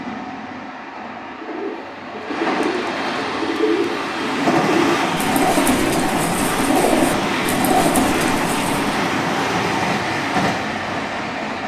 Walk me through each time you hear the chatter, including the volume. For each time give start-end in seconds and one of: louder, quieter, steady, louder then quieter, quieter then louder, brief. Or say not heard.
not heard.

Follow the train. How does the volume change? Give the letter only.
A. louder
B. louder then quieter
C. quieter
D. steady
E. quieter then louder
A.